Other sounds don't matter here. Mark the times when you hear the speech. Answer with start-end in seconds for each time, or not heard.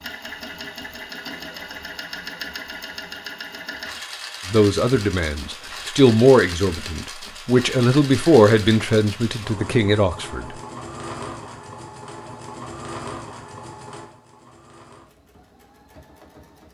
4.5-10.6.